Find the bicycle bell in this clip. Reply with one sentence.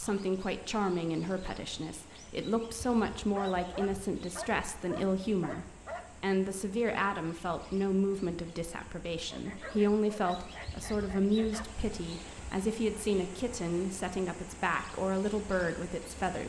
The bicycle bell can't be heard in this clip.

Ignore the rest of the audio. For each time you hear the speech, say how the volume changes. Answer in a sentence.
The speech can be heard from 0.0 to 16.4 s, at a steady volume.